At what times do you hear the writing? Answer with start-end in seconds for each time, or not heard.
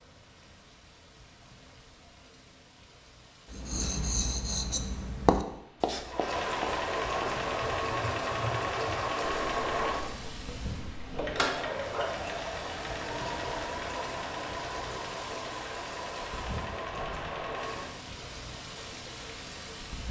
3.5-12.2.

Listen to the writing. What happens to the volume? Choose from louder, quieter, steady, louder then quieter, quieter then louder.
quieter.